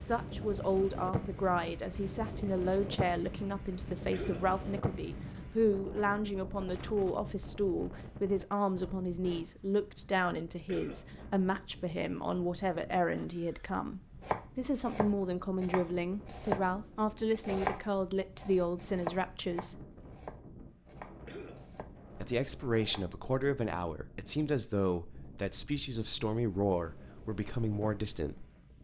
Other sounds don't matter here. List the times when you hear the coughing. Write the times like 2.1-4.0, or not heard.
4.1-4.5, 10.7-11.1, 21.2-21.7.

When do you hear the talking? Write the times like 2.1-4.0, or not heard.
0.0-19.8, 22.1-28.4.